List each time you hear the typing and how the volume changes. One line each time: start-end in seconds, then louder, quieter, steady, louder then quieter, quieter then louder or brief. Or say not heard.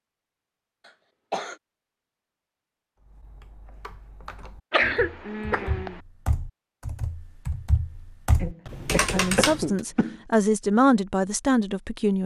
3.0-9.8 louder.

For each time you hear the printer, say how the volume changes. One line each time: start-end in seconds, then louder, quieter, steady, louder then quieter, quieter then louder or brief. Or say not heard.
not heard.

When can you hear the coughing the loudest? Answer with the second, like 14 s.
5 s.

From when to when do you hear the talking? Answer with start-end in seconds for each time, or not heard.
9.1-12.2.